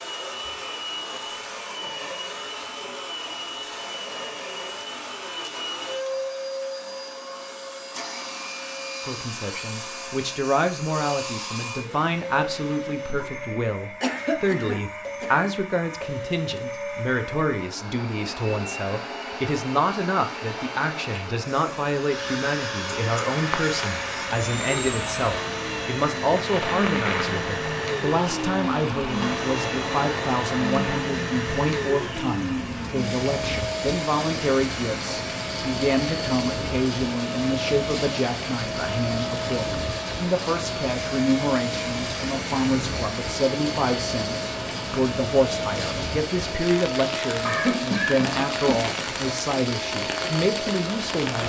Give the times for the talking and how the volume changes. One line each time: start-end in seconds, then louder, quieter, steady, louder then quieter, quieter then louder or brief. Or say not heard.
9.1-51.4 steady.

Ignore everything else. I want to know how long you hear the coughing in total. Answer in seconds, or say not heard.
3 s.